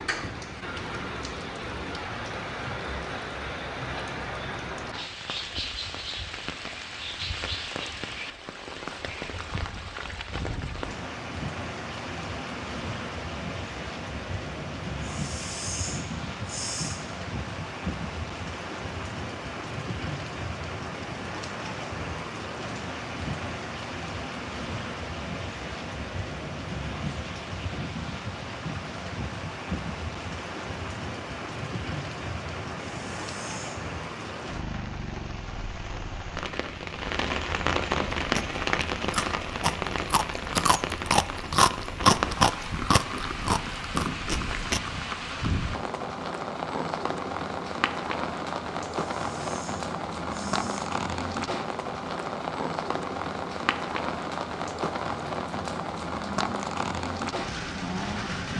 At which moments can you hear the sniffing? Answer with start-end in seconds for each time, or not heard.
15.0-17.0, 32.9-33.9, 49.0-50.9.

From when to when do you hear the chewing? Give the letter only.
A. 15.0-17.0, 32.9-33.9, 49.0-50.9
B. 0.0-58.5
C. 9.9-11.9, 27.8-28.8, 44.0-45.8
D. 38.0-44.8
D.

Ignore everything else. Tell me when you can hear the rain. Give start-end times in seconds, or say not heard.
0.0-58.5.